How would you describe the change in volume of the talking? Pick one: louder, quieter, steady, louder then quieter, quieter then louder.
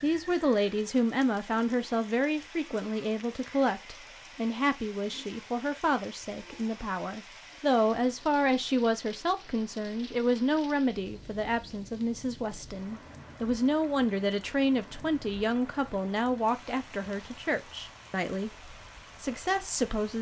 steady.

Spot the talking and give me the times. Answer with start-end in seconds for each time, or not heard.
0.0-20.1.